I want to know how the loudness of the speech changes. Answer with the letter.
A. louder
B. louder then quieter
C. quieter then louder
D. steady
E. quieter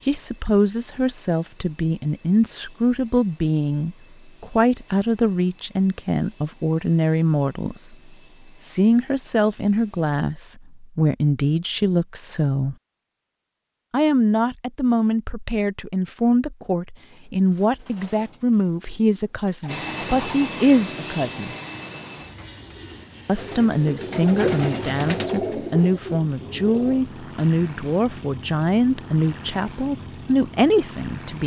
D.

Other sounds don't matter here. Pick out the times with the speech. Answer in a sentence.
You can hear the speech from 0.1 to 12.8 s, from 13.9 to 21.6 s and from 23.2 to 31.4 s.